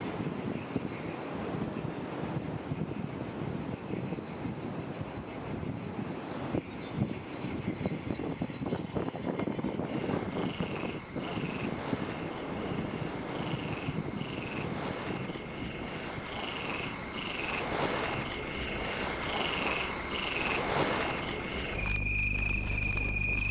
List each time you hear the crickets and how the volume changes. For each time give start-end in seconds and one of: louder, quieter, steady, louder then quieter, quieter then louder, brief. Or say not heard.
0.0-23.4 louder.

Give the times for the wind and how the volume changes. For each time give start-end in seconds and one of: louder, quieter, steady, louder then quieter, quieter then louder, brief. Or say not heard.
0.0-23.4 quieter.